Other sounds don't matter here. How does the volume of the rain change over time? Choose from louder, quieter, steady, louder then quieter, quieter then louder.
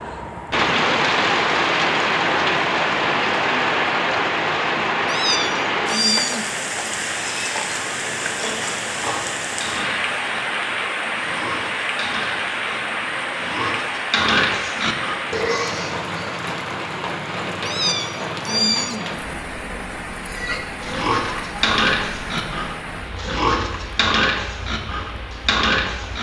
quieter.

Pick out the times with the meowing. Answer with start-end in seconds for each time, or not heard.
5.0-6.5, 17.6-19.1.